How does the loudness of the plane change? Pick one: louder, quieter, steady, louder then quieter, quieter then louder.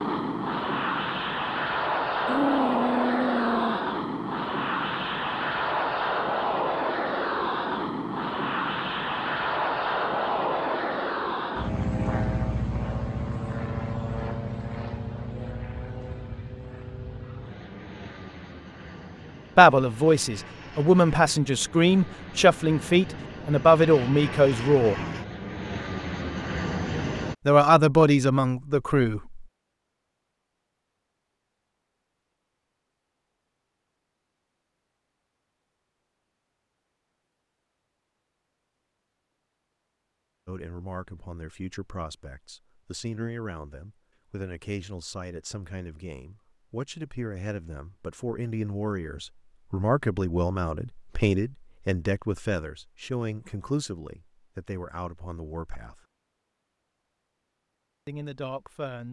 quieter then louder.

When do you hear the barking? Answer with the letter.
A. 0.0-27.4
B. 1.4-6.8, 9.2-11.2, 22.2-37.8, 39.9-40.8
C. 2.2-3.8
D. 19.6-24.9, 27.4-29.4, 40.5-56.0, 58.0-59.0
C.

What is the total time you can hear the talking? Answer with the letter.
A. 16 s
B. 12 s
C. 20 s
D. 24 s
D.